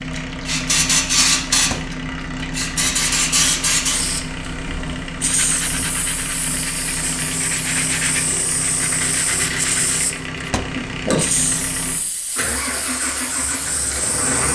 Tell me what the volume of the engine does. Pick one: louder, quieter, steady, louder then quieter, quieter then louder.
steady.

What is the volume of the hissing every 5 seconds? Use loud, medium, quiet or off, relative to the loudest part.
loud, medium, medium.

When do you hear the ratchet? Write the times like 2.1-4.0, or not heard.
not heard.